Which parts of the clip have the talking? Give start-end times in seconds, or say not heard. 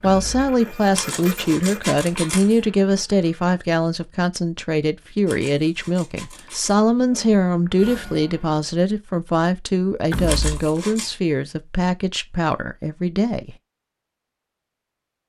0.0-13.6.